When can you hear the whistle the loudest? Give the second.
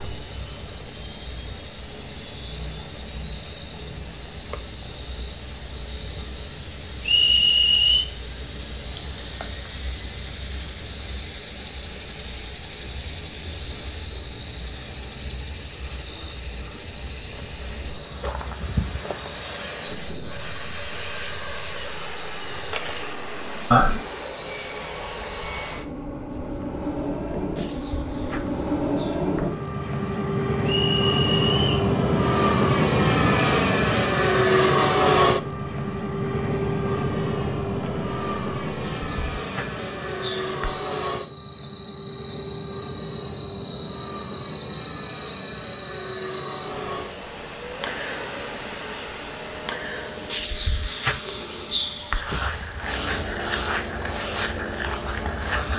7 s.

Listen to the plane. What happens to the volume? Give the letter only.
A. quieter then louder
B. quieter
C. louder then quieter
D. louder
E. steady
C.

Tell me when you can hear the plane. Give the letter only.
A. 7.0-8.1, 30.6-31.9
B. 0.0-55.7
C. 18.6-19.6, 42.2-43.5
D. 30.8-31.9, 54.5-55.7
B.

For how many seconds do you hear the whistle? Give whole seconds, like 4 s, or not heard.
2 s.